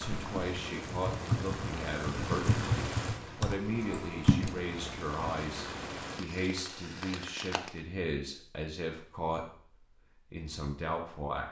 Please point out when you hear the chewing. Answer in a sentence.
The chewing can't be heard in this clip.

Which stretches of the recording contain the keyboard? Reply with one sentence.
You can hear the keyboard from 0.0 to 4.6 s.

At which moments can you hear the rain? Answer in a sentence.
The rain can be heard from 0.0 to 7.8 s.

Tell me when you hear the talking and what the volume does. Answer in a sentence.
You can hear the talking from 0.0 to 11.4 s, at a steady volume.